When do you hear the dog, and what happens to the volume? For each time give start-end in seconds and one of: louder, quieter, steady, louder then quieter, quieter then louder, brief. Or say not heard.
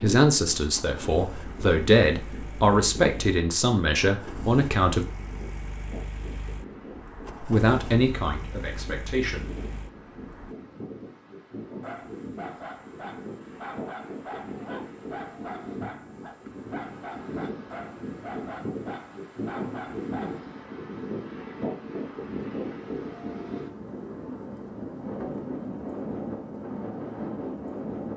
11.8-20.4 steady.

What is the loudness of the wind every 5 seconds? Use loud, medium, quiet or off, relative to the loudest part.
medium, medium, medium, loud, loud, loud.